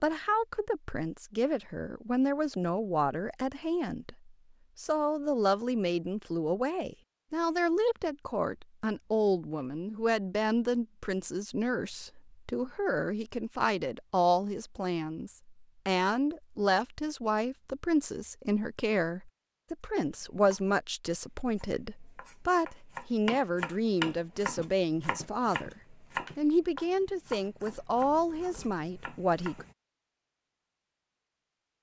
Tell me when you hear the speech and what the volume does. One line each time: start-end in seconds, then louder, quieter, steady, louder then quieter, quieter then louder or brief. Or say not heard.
0.0-29.6 steady.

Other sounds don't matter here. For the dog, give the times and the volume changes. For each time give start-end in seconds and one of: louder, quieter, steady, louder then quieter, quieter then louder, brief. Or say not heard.
not heard.